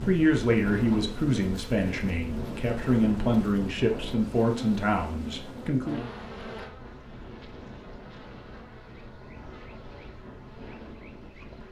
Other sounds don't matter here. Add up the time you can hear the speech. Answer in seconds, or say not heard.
6 s.